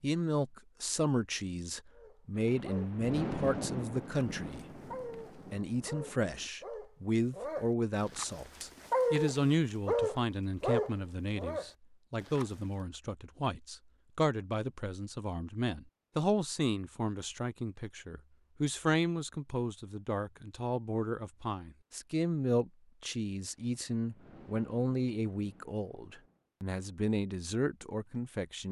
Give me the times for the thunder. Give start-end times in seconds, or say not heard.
2.4-6.5, 23.5-26.4.